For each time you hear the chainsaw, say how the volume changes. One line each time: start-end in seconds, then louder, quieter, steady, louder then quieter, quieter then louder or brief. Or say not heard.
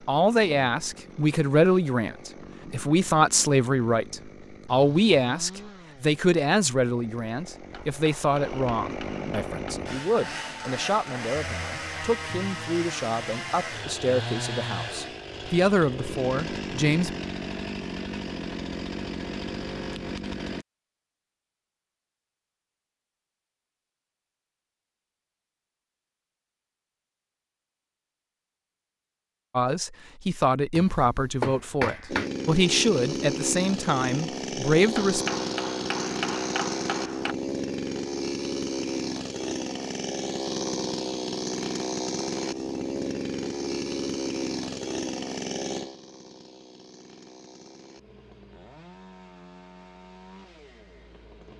0.0-20.6 louder
32.0-51.5 quieter.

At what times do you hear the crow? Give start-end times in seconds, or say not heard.
not heard.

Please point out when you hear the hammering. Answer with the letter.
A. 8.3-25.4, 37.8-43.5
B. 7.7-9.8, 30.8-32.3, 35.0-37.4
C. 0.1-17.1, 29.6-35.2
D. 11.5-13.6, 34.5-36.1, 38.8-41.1
B.